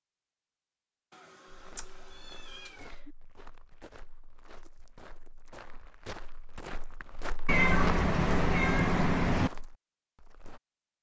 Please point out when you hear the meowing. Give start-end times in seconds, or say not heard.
1.1-3.1, 7.5-9.5.